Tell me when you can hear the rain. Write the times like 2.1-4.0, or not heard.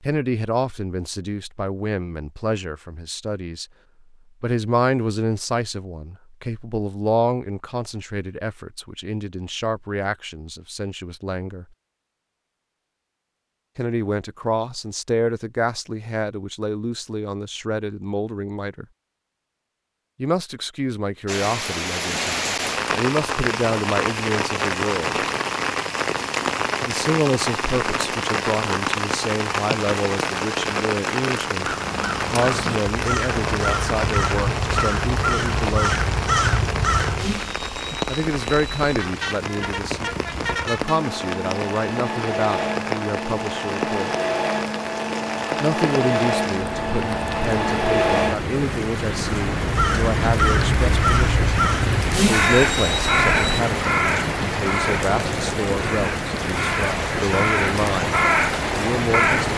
21.2-59.5.